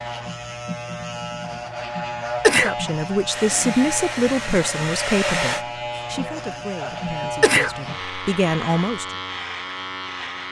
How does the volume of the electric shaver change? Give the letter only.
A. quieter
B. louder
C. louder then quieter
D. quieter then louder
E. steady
E.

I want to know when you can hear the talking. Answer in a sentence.
The talking can be heard from 2.5 to 9.2 s.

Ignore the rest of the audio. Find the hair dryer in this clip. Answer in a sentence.
You can hear the hair dryer from 3.2 to 5.7 s.